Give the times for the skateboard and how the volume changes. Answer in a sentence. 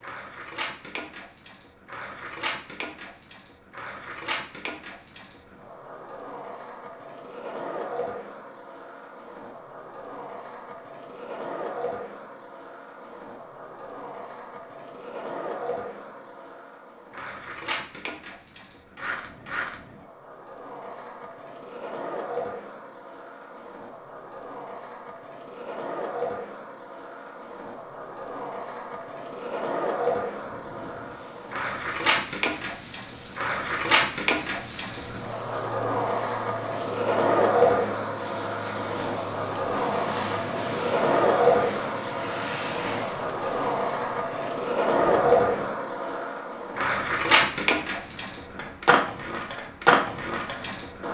You can hear the skateboard from 0.0 to 51.0 s, getting louder.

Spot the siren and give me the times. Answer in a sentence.
The siren can't be heard in this clip.